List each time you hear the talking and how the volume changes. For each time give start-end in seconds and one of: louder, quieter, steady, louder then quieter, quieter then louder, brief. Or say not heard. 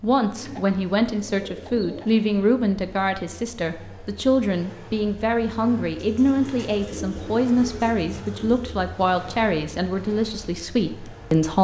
0.0-11.5 steady.